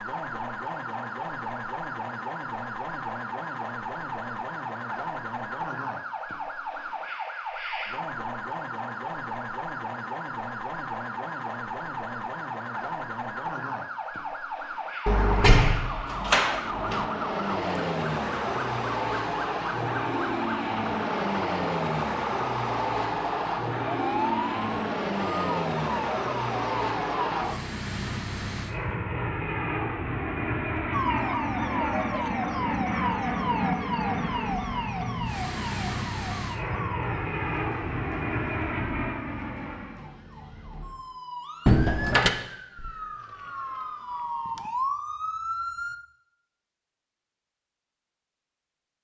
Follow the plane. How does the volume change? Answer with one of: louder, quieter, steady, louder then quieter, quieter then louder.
steady.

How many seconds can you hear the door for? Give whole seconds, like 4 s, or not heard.
3 s.